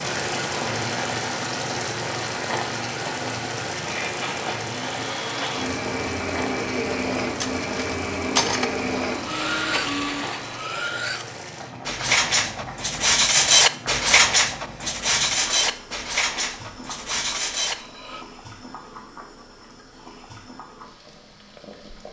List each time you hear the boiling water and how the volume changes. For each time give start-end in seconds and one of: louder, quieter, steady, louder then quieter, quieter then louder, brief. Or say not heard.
0.0-22.0 quieter.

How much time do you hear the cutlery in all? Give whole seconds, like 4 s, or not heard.
11 s.